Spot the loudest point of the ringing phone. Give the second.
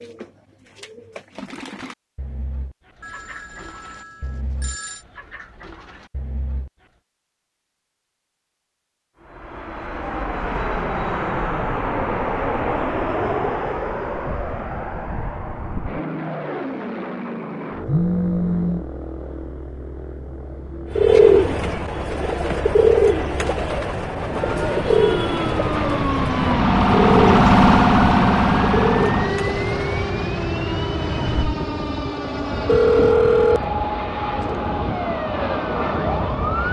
33 s.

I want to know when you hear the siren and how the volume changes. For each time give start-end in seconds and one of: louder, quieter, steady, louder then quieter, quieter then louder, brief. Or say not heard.
24.3-36.6 louder then quieter.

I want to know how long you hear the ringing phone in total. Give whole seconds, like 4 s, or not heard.
4 s.